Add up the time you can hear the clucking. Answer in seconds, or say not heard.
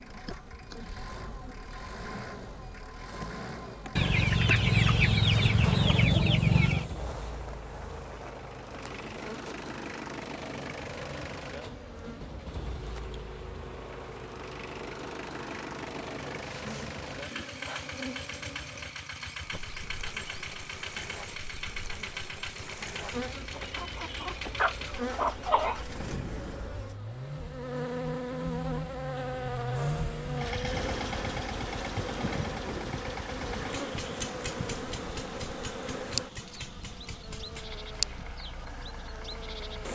5 s.